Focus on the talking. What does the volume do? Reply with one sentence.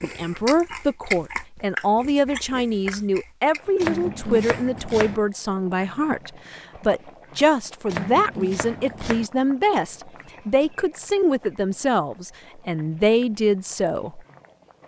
The volume of the talking stays about the same.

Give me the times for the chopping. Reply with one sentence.
You can hear the chopping from 3.8 to 5.2 s and from 7.8 to 9.3 s.